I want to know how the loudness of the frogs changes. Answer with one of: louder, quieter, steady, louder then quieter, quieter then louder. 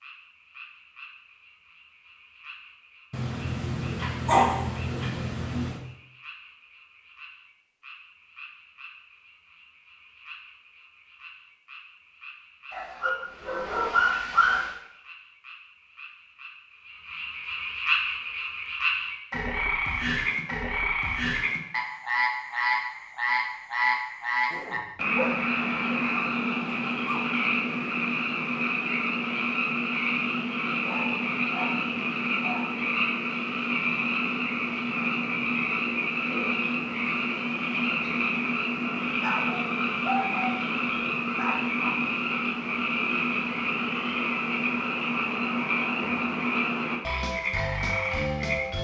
louder.